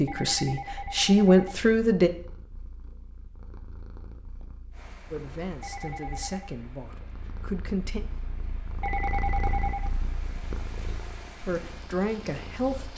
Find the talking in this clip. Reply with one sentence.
The talking can be heard from 0.0 to 2.1 s, from 5.1 to 8.0 s and from 11.4 to 12.9 s.